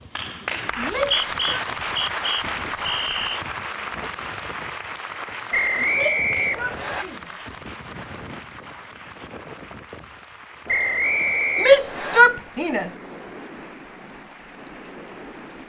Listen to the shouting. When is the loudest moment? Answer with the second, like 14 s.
12 s.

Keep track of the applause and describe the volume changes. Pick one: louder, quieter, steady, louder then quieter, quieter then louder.
quieter.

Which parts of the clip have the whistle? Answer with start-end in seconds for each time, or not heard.
0.7-3.2, 5.5-7.0, 10.7-12.2.